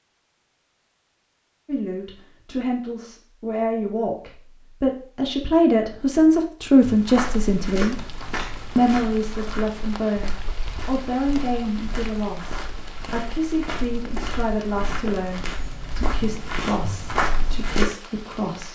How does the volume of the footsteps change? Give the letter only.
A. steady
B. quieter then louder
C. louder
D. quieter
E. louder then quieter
B.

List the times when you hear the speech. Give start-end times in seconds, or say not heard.
1.6-8.1, 8.8-18.7.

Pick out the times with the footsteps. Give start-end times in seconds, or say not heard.
6.8-17.9.